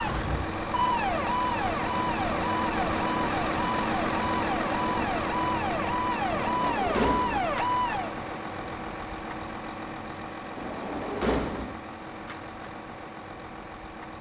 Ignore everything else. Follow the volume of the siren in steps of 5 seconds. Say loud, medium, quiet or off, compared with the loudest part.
loud, loud, off.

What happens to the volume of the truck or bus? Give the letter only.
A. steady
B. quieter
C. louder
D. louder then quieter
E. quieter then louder
B.